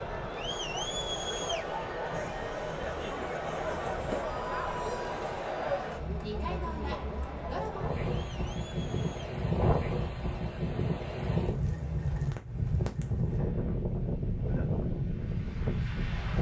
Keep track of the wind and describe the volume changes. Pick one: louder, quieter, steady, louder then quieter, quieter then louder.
louder.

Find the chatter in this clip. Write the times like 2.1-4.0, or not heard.
0.0-9.3.